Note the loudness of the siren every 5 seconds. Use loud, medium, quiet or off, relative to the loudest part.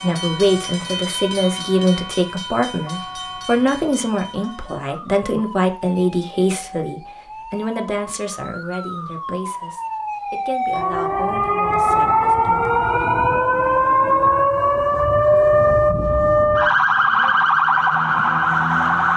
quiet, quiet, loud, loud.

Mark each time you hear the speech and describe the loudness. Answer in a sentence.
The speech can be heard from 0.0 to 13.1 s, getting quieter.